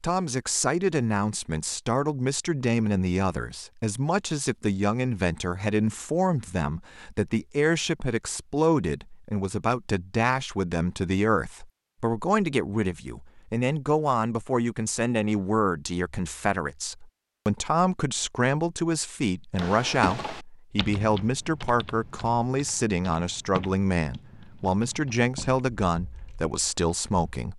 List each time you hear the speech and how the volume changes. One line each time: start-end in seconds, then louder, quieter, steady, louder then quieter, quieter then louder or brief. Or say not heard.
0.0-27.5 steady.